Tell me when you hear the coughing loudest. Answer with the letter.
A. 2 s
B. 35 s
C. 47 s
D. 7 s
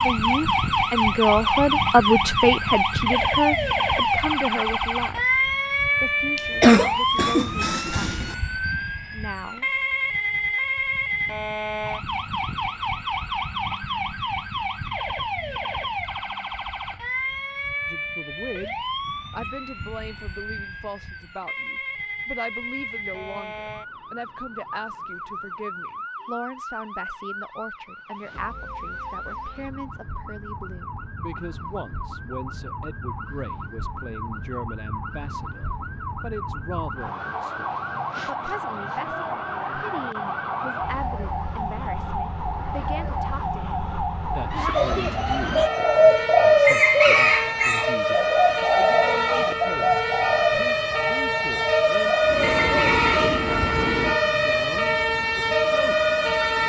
D.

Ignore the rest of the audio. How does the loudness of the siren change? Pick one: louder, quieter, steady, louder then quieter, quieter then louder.
quieter then louder.